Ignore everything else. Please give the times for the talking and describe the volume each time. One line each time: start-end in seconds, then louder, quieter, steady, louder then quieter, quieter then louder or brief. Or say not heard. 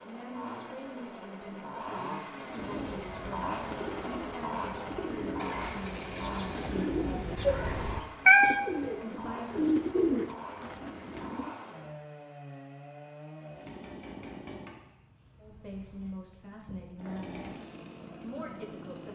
0.1-6.8 steady
8.9-9.8 brief
15.3-17.4 brief
18.2-19.0 brief.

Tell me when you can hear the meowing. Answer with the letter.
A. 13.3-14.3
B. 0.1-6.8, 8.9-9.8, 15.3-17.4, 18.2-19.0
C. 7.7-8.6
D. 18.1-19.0
C.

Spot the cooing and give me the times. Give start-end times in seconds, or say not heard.
2.5-11.5.